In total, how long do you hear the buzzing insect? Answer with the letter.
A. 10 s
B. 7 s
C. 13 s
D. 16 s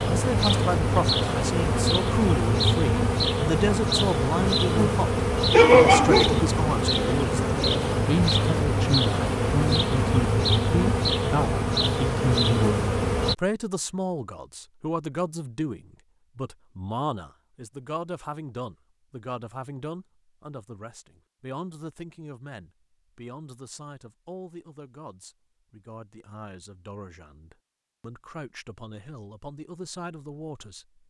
C.